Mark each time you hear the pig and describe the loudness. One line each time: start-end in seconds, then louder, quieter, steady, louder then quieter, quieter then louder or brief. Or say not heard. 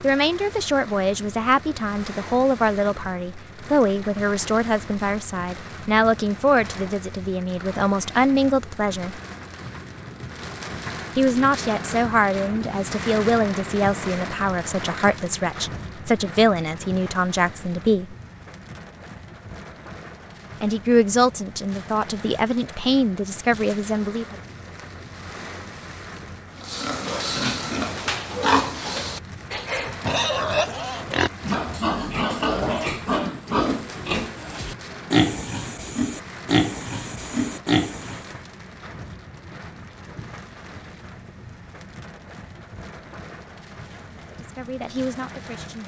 26.6-38.2 steady.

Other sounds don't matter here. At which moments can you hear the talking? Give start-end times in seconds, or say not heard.
0.0-9.2, 11.2-18.1, 20.6-24.4, 44.1-45.8.